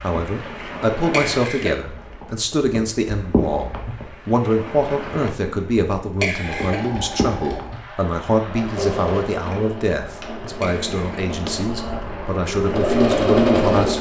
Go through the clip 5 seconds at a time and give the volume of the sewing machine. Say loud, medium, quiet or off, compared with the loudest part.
off, medium, loud.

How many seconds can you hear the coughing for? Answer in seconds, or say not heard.
2 s.